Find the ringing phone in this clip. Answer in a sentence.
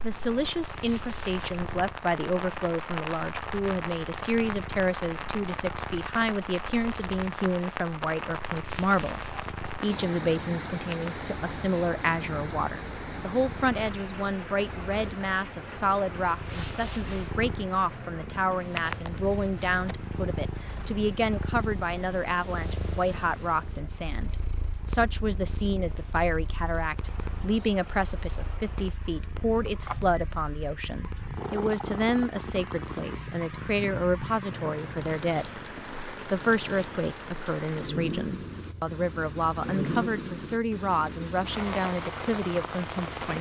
You can hear the ringing phone from 29.6 to 30.2 s.